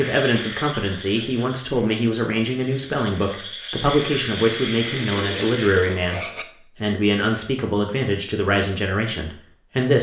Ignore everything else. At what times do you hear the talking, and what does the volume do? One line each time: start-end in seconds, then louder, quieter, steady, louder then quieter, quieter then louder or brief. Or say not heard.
0.0-9.9 steady.